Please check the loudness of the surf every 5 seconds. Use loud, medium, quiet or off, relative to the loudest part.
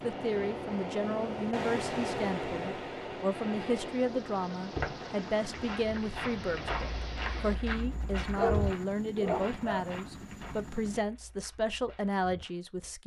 loud, medium, off.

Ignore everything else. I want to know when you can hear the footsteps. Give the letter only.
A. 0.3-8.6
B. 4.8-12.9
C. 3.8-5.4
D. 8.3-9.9
B.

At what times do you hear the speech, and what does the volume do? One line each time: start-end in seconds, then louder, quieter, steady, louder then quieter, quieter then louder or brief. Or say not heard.
0.0-13.0 steady.